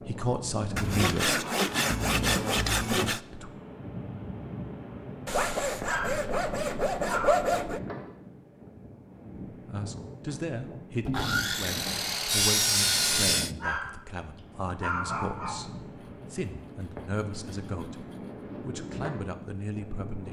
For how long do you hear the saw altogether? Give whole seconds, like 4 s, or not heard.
10 s.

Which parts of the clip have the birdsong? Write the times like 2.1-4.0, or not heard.
not heard.